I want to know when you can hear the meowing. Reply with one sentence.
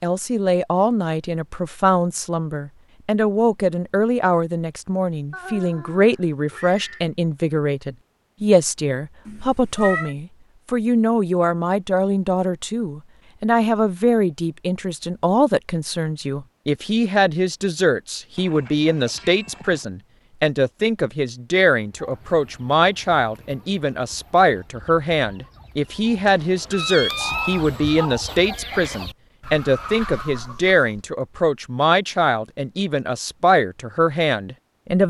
The meowing can be heard from 9.2 to 10.2 s and from 26.2 to 28.1 s.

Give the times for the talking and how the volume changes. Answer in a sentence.
You can hear the talking from 0.0 to 35.0 s, at a steady volume.